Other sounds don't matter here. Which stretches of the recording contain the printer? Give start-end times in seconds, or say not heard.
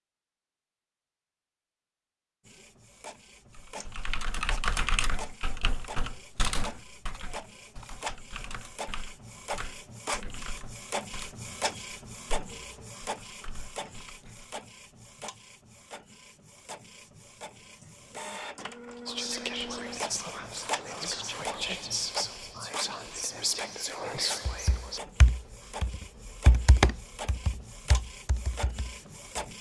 2.5-29.5.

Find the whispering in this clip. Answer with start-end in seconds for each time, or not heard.
19.1-25.0.